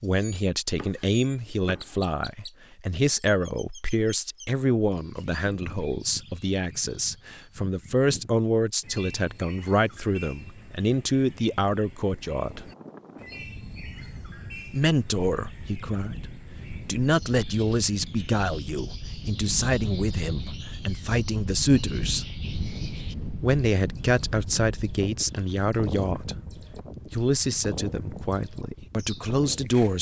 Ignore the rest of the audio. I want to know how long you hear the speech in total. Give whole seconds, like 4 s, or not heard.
27 s.